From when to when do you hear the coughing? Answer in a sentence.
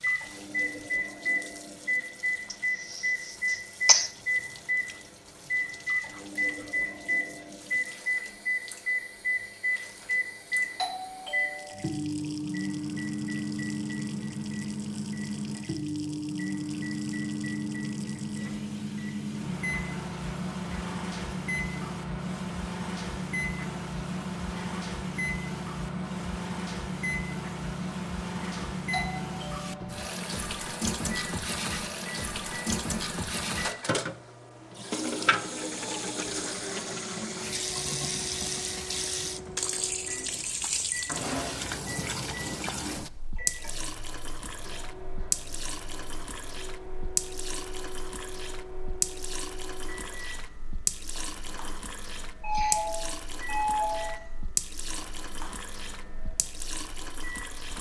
The coughing can be heard from 2.5 to 4.1 s.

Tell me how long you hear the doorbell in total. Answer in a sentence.
The doorbell can be heard for 4 seconds in total.